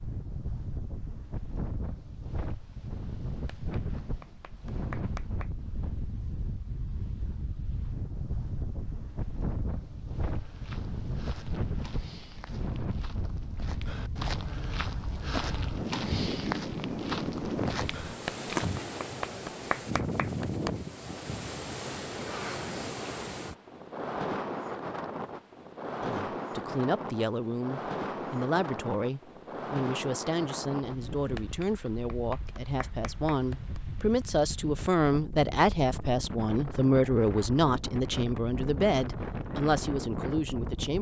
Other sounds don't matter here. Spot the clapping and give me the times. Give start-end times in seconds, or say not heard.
3.3-5.5, 18.1-20.7, 31.1-33.8.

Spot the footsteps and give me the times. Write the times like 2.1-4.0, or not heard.
10.3-18.7.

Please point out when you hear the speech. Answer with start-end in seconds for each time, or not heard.
26.0-40.9.